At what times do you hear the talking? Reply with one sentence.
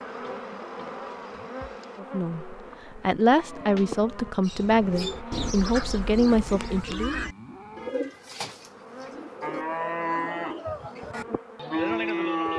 The talking can be heard from 1.9 to 7.2 s.